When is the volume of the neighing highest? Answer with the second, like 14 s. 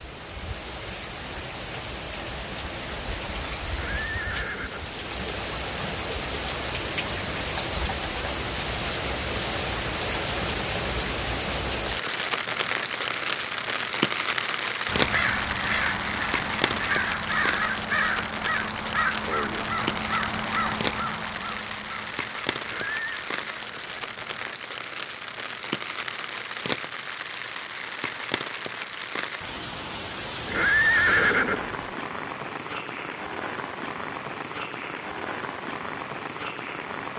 31 s.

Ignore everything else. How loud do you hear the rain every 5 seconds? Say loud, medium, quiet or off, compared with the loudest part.
medium, loud, loud, loud, medium, medium, medium, medium.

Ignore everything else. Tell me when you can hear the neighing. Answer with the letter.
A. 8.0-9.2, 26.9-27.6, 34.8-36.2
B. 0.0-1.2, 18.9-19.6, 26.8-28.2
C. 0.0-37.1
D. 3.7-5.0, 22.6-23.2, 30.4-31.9
D.